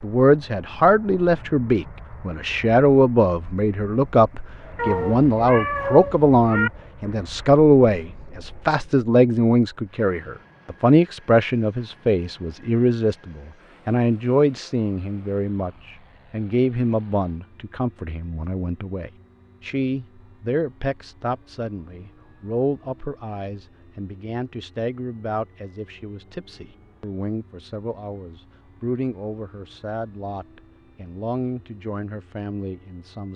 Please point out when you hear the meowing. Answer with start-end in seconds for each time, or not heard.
4.8-6.7.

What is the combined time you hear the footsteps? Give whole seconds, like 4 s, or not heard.
not heard.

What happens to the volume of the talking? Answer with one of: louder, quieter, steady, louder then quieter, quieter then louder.
quieter.